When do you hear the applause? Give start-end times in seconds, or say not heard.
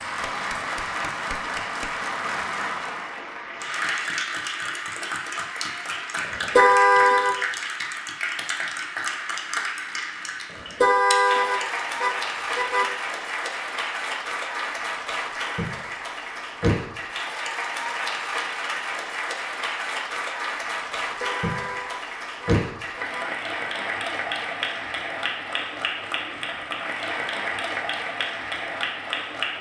0.0-29.5.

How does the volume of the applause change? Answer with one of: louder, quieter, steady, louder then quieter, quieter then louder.
steady.